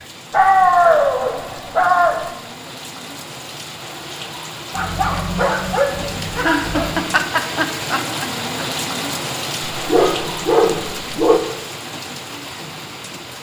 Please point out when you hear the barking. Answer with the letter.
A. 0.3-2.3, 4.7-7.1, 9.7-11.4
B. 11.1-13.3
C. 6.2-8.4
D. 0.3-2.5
A.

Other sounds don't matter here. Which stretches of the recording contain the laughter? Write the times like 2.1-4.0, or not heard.
6.2-8.4.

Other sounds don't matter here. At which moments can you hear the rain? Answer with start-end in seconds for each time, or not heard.
0.0-13.3.